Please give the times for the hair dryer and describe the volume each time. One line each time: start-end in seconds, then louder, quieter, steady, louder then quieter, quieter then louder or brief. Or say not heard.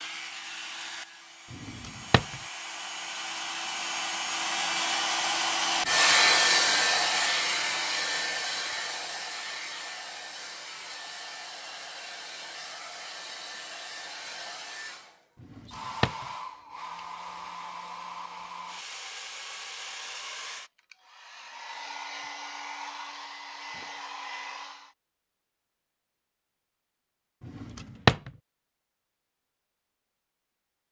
0.0-24.9 louder then quieter.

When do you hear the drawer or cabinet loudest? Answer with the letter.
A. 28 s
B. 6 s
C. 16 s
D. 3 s
A.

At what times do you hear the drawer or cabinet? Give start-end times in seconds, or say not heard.
1.5-2.4, 15.4-16.2, 27.4-28.3.